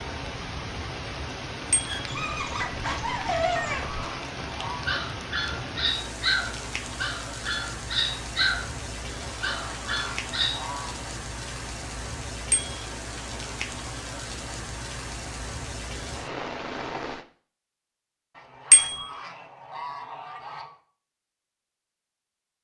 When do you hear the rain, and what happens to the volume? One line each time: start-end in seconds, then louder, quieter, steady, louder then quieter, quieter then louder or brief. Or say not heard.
0.0-17.2 steady.